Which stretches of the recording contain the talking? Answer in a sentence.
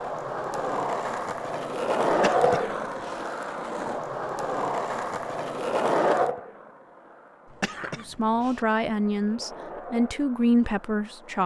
The talking can be heard from 8.0 to 11.4 s.